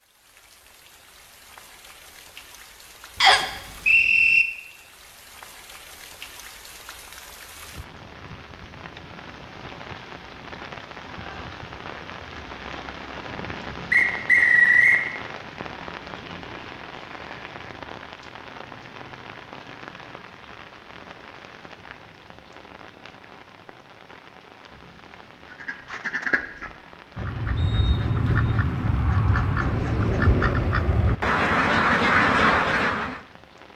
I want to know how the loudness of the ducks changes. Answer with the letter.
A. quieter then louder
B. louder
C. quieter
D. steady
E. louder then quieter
B.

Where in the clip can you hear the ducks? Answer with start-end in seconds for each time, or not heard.
25.4-33.2.